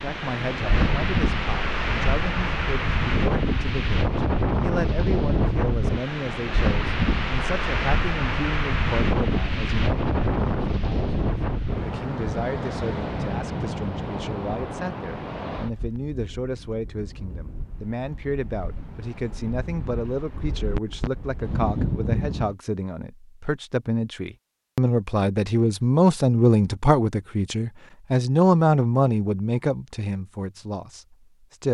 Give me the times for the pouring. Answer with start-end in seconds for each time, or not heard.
not heard.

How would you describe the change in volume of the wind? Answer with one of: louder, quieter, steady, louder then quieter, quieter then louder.
quieter.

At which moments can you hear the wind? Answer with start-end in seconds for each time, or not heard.
0.0-22.6.